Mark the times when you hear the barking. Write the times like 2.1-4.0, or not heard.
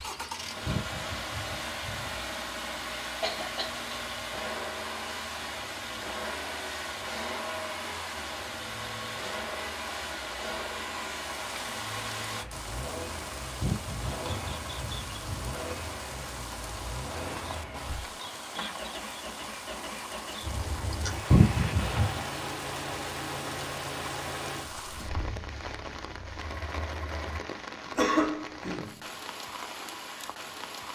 not heard.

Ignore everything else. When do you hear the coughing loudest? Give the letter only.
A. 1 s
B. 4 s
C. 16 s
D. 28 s
D.